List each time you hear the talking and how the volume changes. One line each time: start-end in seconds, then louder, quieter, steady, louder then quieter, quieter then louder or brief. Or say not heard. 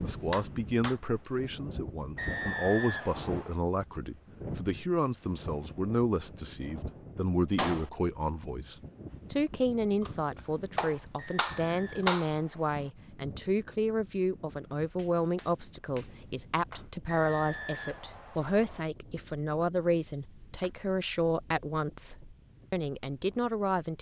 0.0-23.9 steady.